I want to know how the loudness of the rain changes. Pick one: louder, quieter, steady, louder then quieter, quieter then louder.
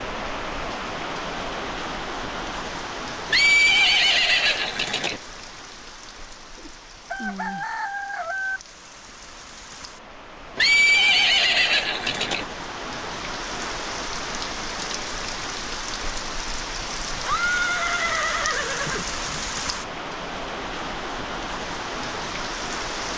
quieter then louder.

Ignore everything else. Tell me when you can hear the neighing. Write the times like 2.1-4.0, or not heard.
3.3-5.2, 10.6-12.4, 17.1-19.4.